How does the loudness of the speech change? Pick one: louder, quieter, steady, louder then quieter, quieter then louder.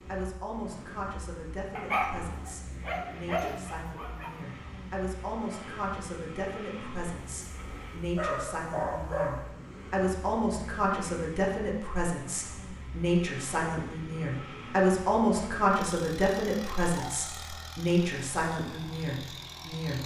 louder.